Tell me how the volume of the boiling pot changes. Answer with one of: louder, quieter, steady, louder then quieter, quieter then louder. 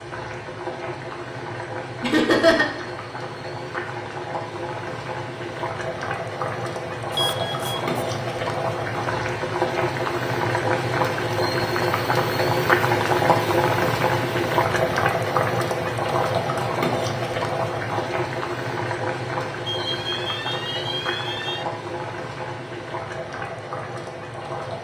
louder then quieter.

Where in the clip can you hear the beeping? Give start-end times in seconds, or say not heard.
7.1-8.1, 19.6-21.6.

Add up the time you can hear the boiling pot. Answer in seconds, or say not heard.
25 s.